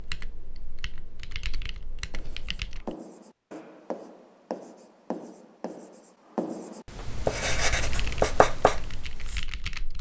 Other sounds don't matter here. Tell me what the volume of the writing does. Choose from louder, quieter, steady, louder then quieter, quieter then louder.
louder.